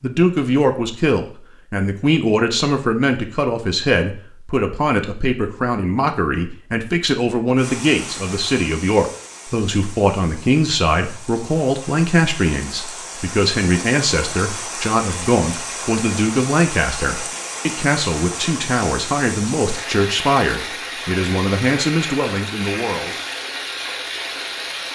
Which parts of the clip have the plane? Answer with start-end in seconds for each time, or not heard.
not heard.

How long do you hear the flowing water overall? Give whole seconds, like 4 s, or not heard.
17 s.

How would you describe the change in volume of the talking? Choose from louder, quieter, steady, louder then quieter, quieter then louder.
steady.